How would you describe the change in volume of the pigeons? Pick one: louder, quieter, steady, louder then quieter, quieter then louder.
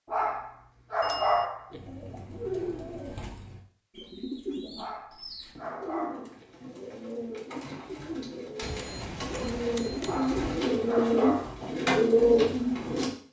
louder.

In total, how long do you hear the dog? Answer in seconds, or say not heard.
5 s.